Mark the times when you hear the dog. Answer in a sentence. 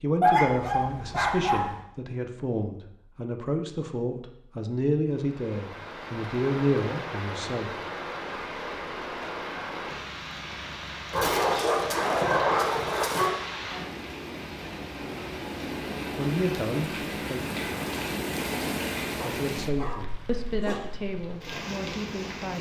You can hear the dog from 0.2 to 1.8 s, from 11.1 to 13.3 s and from 19.1 to 20.9 s.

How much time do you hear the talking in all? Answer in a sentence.
You can hear the talking for 12 seconds altogether.